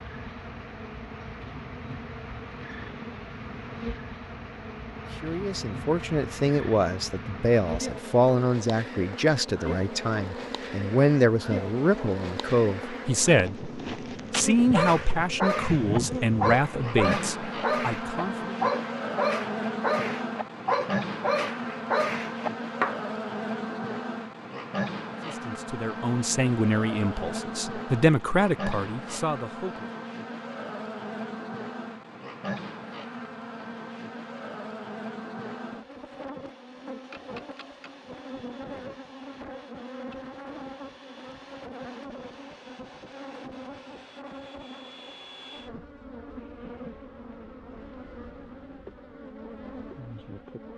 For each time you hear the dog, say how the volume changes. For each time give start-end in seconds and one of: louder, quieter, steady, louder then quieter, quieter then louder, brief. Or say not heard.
14.6-23.0 steady.